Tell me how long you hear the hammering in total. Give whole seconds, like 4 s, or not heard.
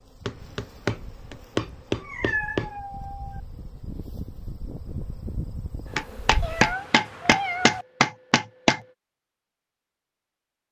5 s.